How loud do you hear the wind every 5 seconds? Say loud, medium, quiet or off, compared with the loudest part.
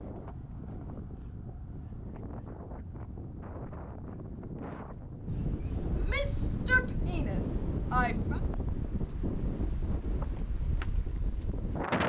medium, loud, loud.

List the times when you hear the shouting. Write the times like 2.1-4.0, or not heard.
6.0-8.4.